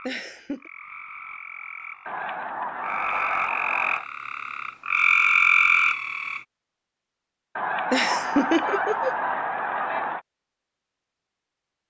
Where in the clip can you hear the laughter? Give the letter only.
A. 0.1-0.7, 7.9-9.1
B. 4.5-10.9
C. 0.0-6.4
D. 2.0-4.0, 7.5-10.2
A.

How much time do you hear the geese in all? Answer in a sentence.
You can hear the geese for 5 seconds altogether.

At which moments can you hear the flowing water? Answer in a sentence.
The flowing water can't be heard in this clip.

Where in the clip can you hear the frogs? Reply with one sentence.
You can hear the frogs from 0.0 to 6.4 s.